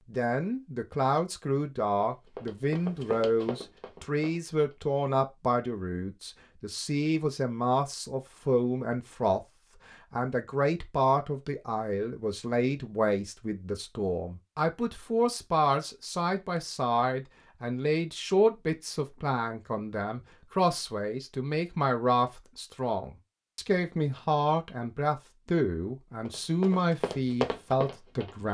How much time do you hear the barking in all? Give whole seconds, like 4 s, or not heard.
not heard.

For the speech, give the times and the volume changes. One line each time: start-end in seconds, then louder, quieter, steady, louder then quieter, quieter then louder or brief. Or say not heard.
0.1-28.4 steady.